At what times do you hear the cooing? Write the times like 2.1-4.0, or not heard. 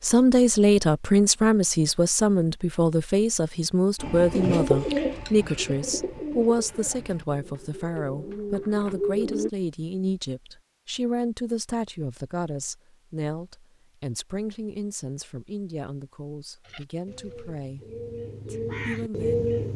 4.0-9.5, 16.6-19.7.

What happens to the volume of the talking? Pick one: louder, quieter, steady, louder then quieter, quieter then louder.
quieter.